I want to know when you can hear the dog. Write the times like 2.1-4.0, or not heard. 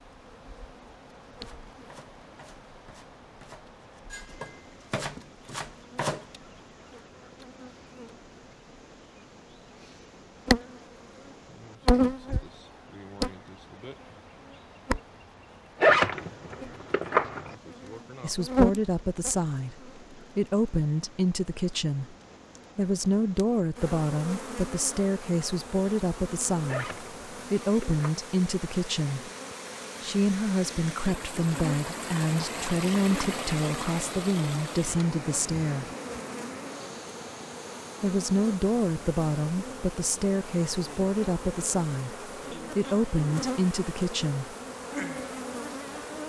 not heard.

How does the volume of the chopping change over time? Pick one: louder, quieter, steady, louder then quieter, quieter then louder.
quieter then louder.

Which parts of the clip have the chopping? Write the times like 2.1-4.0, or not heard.
1.4-6.2.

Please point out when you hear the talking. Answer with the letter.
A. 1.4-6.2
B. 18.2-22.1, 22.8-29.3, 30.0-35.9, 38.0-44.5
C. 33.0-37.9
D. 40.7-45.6
B.